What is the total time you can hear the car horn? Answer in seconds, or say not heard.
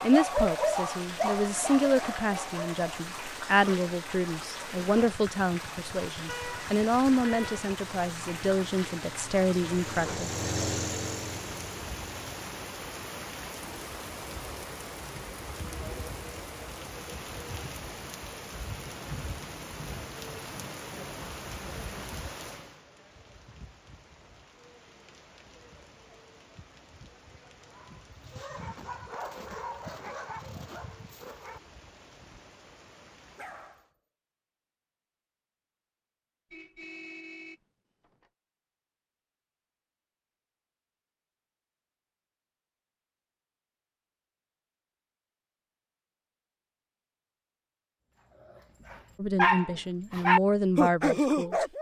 3 s.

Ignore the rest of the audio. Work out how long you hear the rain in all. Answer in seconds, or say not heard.
34 s.